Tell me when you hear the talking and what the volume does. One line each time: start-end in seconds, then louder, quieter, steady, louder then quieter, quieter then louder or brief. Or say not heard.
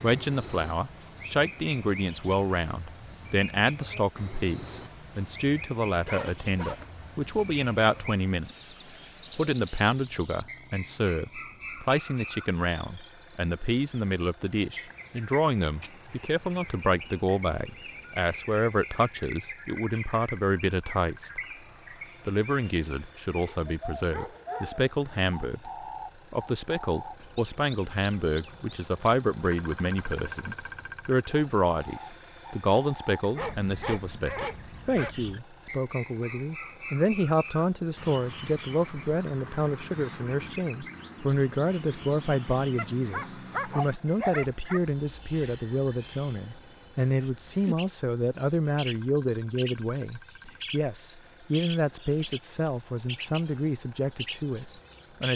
0.0-8.7 steady
9.3-21.4 steady
22.2-55.3 steady.